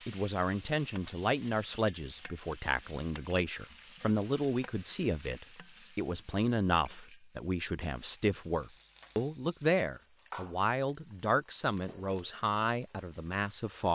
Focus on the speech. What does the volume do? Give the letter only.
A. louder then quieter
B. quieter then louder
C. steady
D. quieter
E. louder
C.